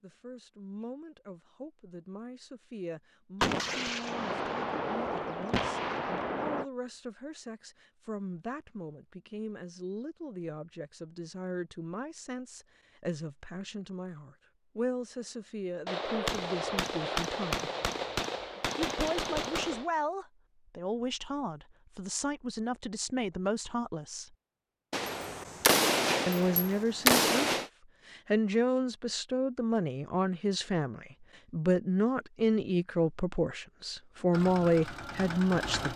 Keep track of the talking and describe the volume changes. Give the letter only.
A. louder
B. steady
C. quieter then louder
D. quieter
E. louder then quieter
A.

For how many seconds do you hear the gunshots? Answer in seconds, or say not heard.
10 s.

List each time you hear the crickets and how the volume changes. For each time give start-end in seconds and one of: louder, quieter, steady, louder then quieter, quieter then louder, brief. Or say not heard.
not heard.